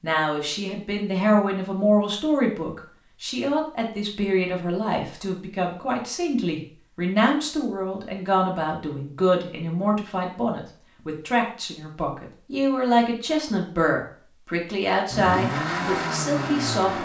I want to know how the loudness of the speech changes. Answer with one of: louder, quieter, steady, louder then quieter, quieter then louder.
steady.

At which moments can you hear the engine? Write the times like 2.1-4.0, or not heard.
15.1-17.0.